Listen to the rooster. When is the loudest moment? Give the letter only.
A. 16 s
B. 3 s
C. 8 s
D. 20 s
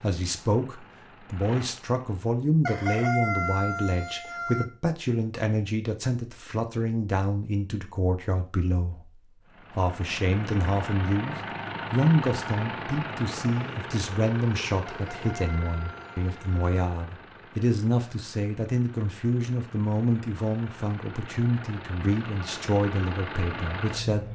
B.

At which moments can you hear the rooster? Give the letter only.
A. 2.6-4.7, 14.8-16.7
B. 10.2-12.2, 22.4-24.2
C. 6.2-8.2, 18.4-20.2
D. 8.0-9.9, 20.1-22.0
A.